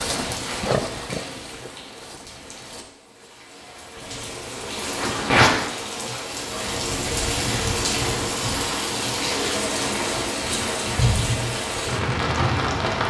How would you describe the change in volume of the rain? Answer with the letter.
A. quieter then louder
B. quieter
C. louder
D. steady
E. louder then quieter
C.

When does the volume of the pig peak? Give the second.
1 s.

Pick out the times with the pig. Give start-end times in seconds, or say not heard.
0.0-2.5.